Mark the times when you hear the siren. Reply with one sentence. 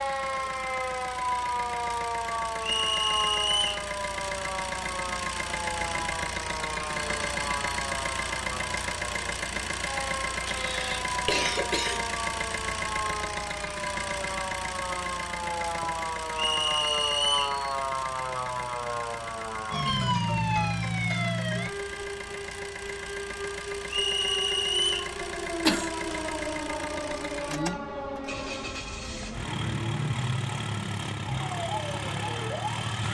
You can hear the siren from 0.0 to 33.0 s.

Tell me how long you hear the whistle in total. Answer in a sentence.
You can hear the whistle for 4 seconds altogether.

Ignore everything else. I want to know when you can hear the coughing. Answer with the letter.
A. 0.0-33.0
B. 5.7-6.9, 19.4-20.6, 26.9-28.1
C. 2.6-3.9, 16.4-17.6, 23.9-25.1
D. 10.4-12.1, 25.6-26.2
D.